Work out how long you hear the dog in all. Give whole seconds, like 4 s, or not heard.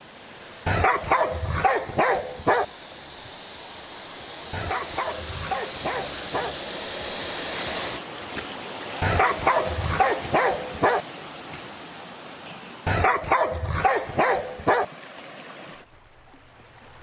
8 s.